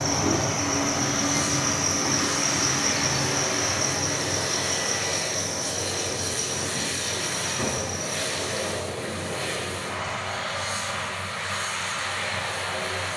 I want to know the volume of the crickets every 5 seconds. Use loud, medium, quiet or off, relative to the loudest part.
loud, medium, off.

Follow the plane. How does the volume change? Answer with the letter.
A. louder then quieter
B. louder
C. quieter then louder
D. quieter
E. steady
E.